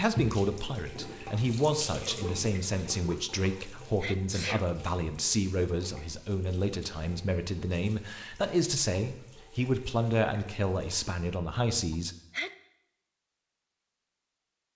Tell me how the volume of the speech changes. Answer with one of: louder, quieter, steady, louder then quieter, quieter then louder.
steady.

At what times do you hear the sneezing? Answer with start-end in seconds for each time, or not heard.
4.0-4.7, 11.9-12.5.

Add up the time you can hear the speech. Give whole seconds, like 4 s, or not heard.
12 s.